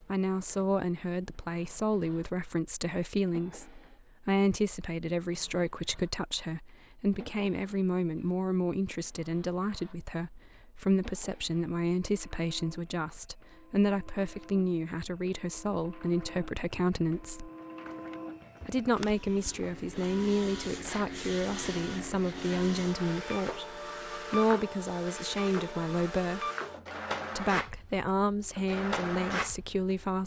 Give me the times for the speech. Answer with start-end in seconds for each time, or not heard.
0.0-17.5, 18.6-26.4, 27.4-30.2.